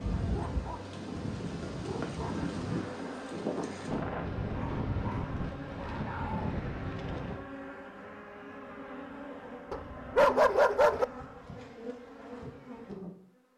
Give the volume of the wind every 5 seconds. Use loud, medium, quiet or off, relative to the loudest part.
loud, loud, off.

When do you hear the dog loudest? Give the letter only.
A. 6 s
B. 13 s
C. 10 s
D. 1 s
C.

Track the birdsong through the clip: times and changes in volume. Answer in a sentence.
You can't hear the birdsong here.